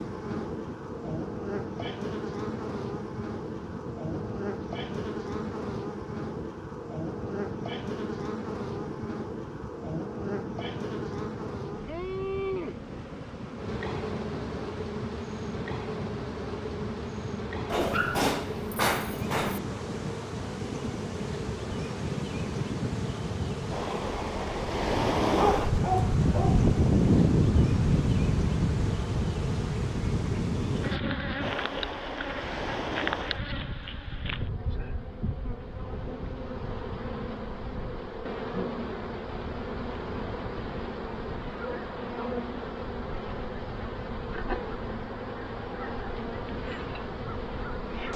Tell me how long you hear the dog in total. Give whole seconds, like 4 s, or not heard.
3 s.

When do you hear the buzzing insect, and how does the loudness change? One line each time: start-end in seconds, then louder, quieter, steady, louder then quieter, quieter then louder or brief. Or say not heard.
0.0-48.1 steady.